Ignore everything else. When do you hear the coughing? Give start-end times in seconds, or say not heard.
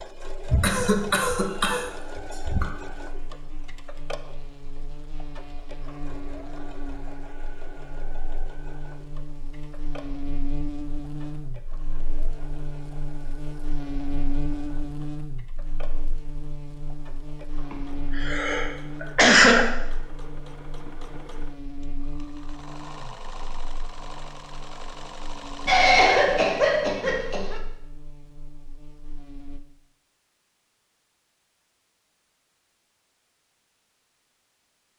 0.5-2.6, 17.7-19.6, 25.6-27.6.